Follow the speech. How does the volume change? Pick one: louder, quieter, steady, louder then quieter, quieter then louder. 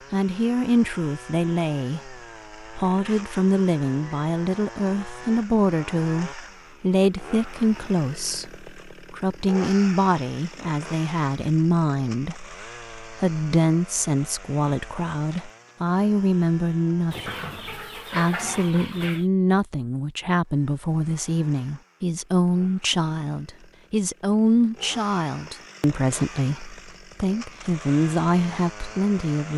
steady.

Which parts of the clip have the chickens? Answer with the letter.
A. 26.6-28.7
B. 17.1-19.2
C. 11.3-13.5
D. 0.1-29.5
B.